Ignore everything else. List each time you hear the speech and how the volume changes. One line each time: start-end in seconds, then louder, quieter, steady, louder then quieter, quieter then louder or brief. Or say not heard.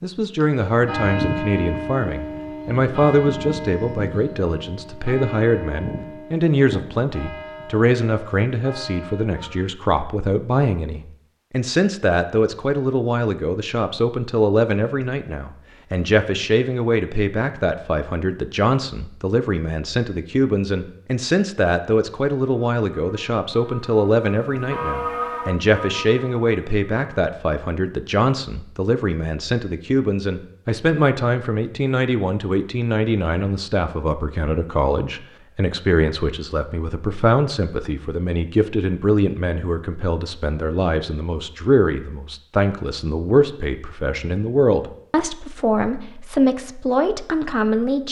0.0-48.0 steady.